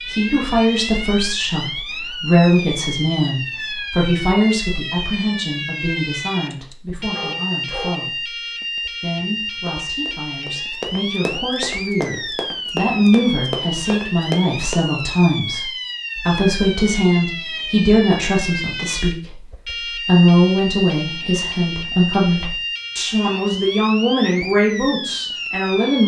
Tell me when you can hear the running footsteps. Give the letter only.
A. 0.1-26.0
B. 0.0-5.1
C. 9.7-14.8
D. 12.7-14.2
C.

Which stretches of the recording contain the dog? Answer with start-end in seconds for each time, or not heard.
6.5-8.1.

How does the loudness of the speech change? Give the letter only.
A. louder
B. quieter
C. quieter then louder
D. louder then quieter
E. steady
C.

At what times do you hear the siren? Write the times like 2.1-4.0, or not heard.
0.0-26.0.